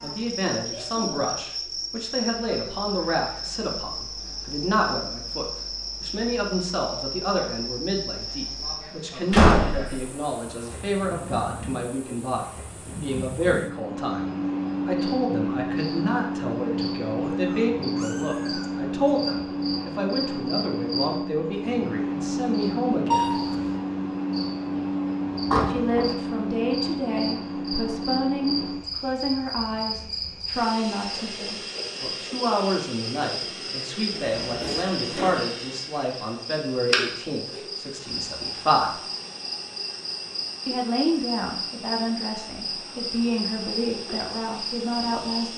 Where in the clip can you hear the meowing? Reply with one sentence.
You can hear the meowing from 17.3 to 19.1 s and from 23.1 to 23.8 s.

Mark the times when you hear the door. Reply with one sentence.
You can hear the door from 9.3 to 10.1 s, from 25.4 to 26.1 s and from 34.1 to 35.4 s.